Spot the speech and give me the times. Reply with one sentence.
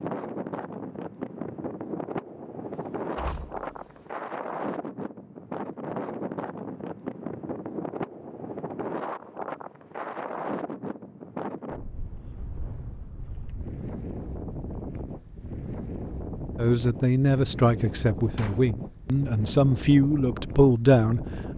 The speech can be heard from 16.6 to 21.2 s.